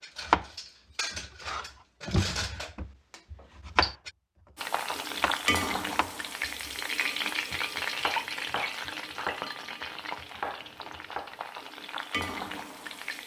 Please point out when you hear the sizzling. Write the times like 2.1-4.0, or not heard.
4.5-13.2.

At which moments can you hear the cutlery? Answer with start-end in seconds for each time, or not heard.
0.0-4.1.